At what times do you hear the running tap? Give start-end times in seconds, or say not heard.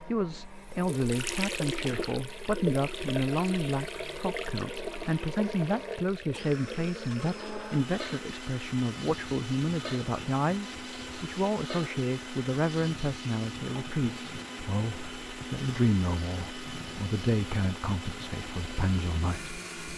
0.1-19.9.